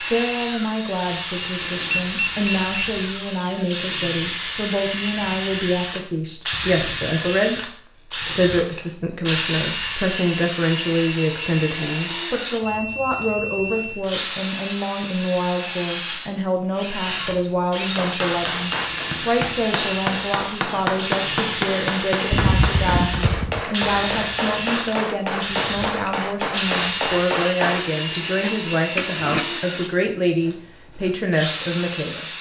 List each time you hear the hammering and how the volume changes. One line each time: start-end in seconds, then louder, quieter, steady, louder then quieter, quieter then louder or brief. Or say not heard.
17.9-29.6 steady.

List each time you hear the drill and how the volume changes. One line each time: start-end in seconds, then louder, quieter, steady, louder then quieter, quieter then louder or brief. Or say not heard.
0.0-32.3 steady.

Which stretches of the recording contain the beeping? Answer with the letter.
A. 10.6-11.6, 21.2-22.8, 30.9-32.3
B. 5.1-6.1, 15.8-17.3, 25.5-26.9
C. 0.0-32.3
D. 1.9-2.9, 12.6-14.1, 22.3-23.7
D.